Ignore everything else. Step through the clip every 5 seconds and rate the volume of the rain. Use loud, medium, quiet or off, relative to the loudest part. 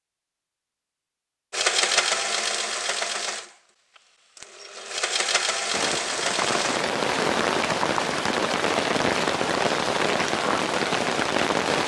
off, loud, loud.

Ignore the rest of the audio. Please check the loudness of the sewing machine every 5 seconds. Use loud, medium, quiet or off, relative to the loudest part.
loud, loud, off.